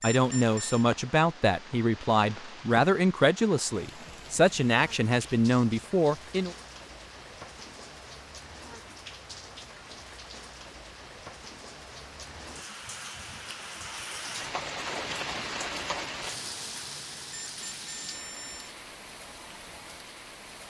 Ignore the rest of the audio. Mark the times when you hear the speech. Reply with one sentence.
The speech can be heard from 0.0 to 6.5 s.